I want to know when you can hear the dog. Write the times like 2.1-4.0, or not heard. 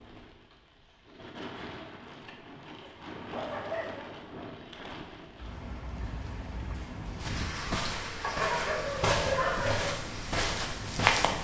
2.8-4.0, 8.2-9.9.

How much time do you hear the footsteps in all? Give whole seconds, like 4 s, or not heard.
4 s.